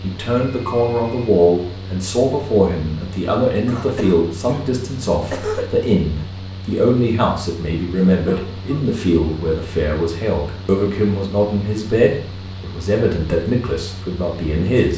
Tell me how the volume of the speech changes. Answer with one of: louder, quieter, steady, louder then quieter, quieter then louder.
steady.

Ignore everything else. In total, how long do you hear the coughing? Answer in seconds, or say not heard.
3 s.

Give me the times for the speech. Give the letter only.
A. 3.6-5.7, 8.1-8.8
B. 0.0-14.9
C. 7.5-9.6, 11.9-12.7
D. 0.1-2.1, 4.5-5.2
B.